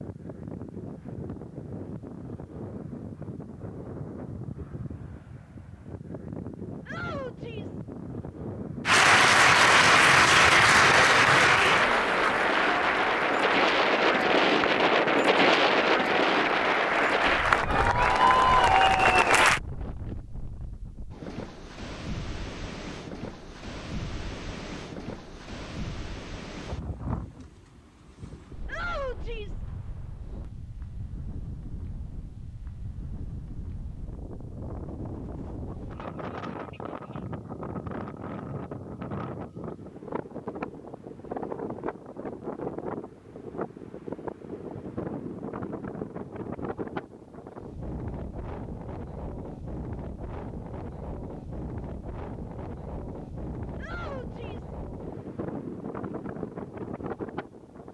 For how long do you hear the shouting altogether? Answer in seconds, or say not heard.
3 s.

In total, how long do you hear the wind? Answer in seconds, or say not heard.
58 s.